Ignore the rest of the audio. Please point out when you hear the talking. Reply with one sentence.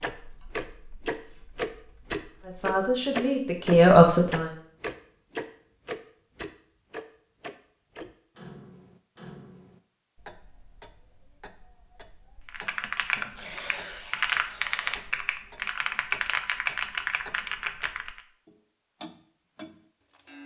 The talking can be heard from 2.5 to 4.5 s.